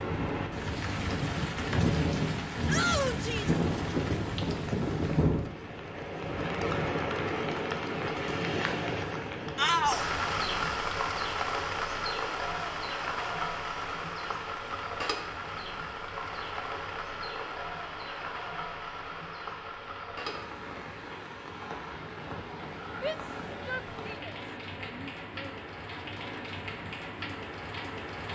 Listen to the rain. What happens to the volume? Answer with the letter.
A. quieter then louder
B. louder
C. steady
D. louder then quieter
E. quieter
E.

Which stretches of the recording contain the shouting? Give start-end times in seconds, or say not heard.
2.6-3.5, 9.6-10.0, 23.0-25.5.